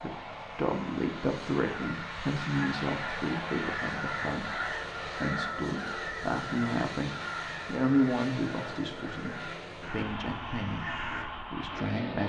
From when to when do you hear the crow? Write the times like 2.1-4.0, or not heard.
1.6-11.2.